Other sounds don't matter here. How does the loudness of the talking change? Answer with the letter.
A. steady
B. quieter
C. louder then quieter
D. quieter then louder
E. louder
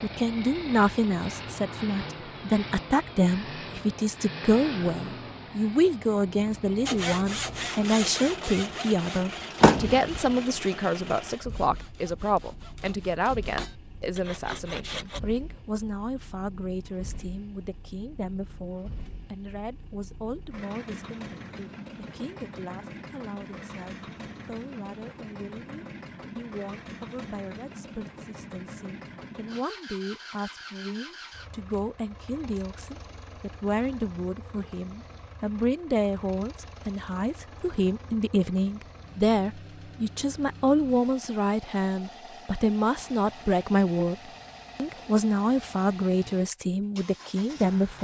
D.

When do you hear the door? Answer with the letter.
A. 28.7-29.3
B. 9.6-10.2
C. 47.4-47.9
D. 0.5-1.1
B.